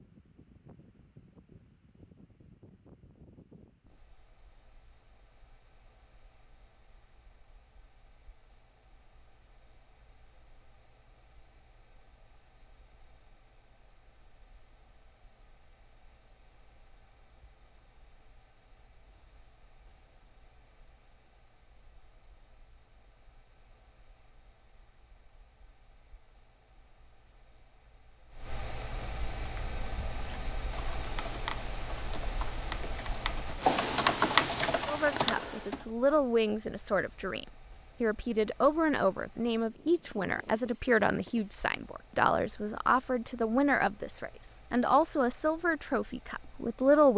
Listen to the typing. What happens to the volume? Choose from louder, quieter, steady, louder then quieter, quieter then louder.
louder.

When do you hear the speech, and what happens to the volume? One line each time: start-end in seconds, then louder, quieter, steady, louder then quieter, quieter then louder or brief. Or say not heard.
34.9-47.1 steady.